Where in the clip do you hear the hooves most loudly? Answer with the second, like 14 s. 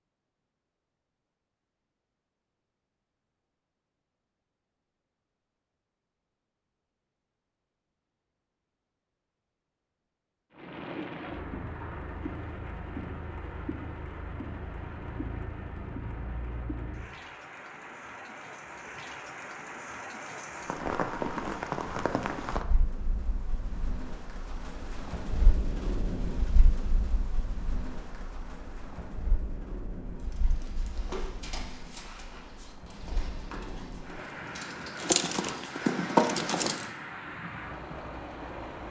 36 s.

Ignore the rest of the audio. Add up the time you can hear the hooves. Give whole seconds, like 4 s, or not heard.
7 s.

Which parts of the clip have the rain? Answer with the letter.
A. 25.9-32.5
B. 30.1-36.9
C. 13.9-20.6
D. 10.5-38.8
D.